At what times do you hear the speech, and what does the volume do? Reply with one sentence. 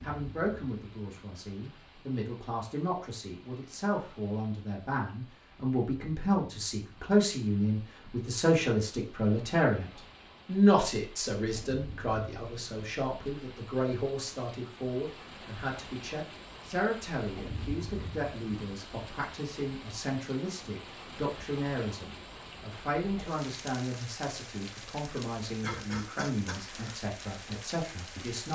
You can hear the speech from 0.0 to 28.4 s, getting louder then quieter.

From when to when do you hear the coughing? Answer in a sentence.
You can hear the coughing from 25.6 to 26.9 s.